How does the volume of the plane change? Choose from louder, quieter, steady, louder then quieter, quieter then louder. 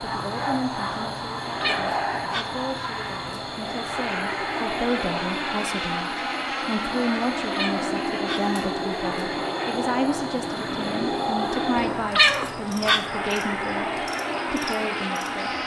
steady.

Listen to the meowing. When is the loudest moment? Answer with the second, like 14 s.
12 s.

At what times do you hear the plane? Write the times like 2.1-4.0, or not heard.
0.0-15.6.